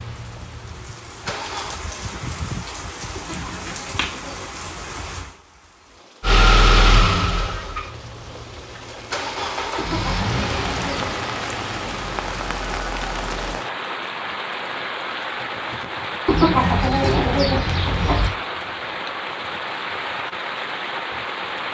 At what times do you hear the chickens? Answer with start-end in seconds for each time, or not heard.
3.1-5.2, 9.8-11.2, 16.2-18.3.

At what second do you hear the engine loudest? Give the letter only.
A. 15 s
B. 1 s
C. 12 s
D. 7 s
D.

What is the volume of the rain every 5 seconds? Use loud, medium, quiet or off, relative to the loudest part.
medium, medium, loud, loud, loud.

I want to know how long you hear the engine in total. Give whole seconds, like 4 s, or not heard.
9 s.